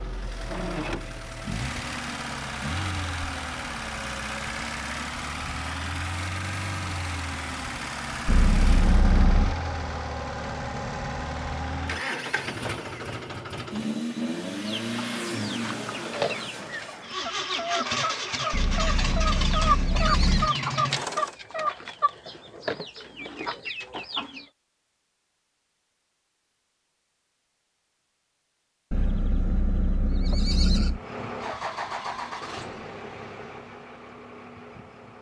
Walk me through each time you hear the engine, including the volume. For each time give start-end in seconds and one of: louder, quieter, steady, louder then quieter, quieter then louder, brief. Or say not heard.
0.0-21.4 steady
30.9-35.1 quieter.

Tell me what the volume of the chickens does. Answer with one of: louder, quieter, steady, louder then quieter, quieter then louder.
louder then quieter.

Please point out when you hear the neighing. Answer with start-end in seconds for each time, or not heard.
8.2-9.6, 18.5-20.5, 28.9-31.0.